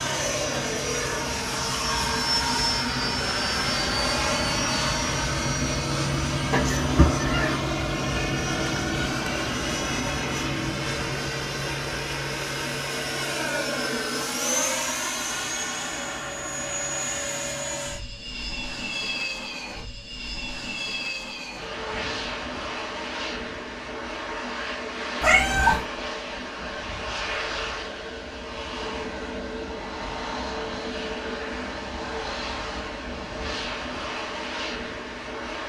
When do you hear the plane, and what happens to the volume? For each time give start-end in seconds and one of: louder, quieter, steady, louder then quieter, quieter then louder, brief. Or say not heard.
0.0-35.6 quieter.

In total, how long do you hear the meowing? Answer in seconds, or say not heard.
2 s.